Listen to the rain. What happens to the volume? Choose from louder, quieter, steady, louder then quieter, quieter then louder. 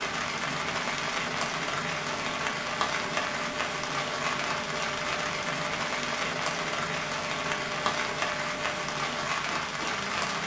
steady.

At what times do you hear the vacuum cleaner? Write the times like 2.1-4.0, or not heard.
0.0-10.4.